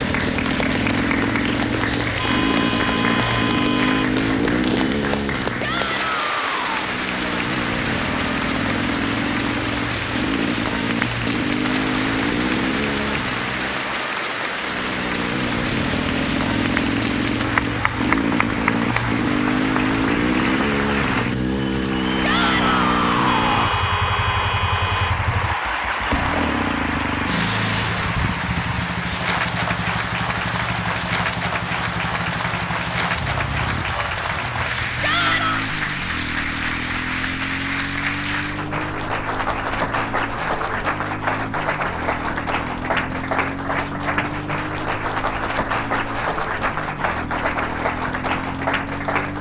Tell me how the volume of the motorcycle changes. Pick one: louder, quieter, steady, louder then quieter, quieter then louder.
quieter.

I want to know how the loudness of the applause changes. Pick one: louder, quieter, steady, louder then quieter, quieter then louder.
steady.